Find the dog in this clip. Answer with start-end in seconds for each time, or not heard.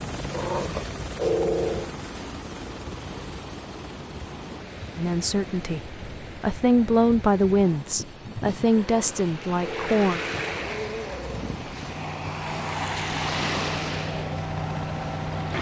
0.3-1.9, 8.8-11.5.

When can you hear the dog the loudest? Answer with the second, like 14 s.
1 s.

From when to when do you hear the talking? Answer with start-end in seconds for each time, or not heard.
5.0-10.2.